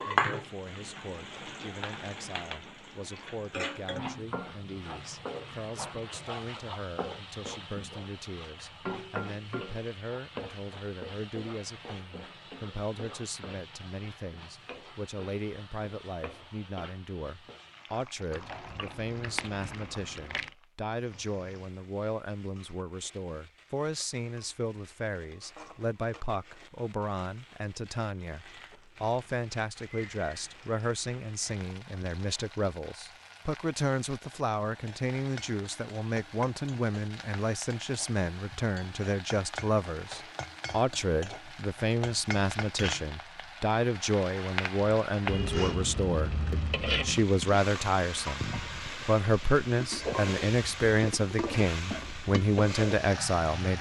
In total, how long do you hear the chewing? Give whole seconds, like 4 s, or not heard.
2 s.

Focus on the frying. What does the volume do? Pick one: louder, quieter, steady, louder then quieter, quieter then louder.
quieter then louder.